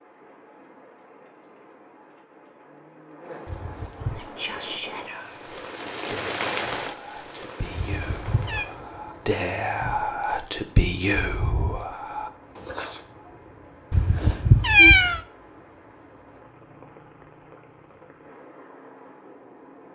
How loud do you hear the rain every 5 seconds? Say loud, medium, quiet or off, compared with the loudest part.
medium, loud, quiet, quiet.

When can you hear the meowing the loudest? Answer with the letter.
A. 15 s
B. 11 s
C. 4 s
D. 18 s
A.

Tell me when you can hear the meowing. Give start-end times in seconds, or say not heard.
3.5-4.2, 7.8-8.7, 13.9-15.2.